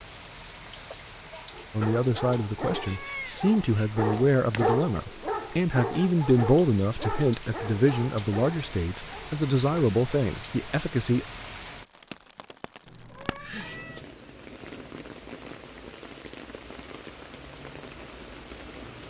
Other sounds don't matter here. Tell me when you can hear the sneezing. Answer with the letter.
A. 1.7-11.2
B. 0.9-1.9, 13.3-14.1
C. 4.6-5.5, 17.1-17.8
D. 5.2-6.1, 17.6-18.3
B.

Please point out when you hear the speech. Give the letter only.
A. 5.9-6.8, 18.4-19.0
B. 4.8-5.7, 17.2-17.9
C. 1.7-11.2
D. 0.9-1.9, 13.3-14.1
C.